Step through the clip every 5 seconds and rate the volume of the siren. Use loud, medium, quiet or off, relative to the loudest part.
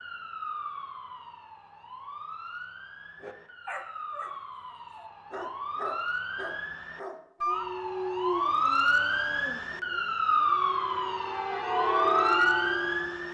quiet, loud, loud.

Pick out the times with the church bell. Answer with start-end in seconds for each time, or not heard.
10.7-13.2.